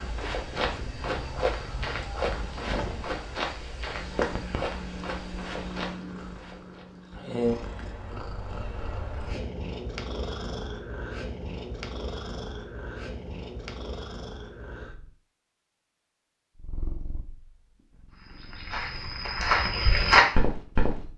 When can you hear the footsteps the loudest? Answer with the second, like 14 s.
20 s.